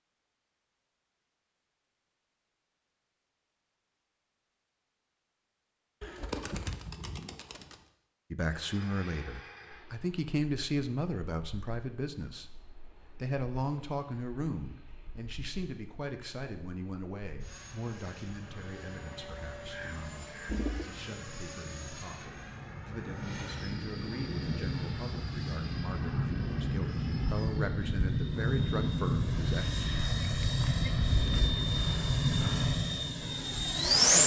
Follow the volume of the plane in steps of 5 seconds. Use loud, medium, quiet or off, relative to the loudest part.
off, quiet, quiet, quiet, quiet, medium, loud.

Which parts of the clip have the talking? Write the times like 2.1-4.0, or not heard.
8.3-12.5, 13.2-29.6.